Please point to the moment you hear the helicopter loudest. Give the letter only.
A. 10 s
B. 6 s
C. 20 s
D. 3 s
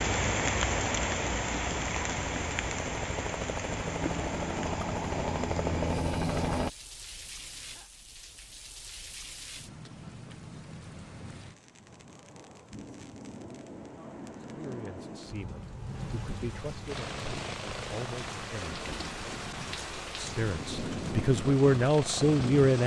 B.